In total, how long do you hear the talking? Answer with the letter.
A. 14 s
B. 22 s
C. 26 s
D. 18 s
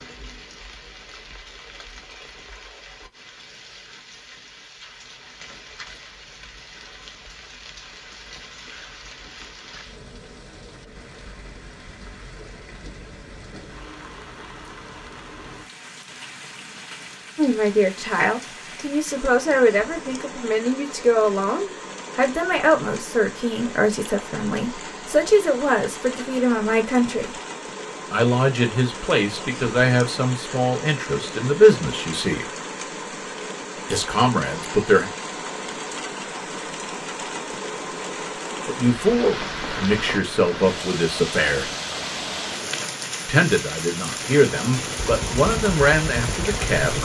B.